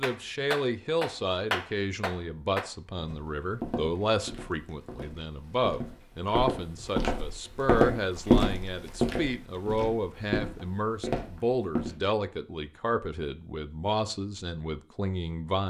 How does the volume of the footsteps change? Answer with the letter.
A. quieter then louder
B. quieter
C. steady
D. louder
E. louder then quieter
E.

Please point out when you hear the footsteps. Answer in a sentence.
You can hear the footsteps from 3.0 to 11.9 s.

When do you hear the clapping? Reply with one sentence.
The clapping can be heard from 0.0 to 2.7 s.